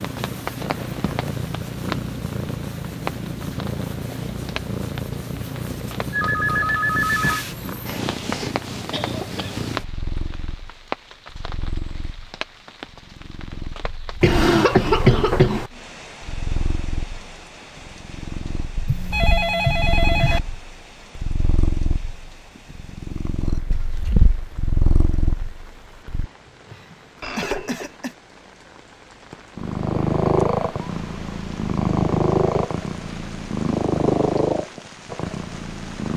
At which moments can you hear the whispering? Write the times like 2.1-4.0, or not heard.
not heard.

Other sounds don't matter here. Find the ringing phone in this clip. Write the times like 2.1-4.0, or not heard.
6.1-7.5, 18.9-20.4, 27.2-27.9.